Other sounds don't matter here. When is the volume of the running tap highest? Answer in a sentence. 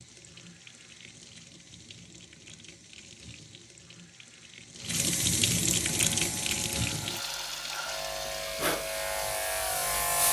The volume of the running tap peaks at 6 seconds.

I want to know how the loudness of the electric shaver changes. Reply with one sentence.
The volume of the electric shaver goes up.